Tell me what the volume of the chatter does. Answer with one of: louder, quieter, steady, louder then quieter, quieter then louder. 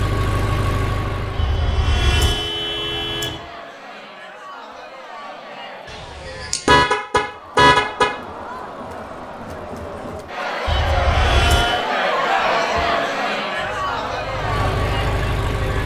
louder.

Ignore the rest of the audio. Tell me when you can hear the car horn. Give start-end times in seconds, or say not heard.
1.4-3.4, 5.9-8.2, 10.7-11.8.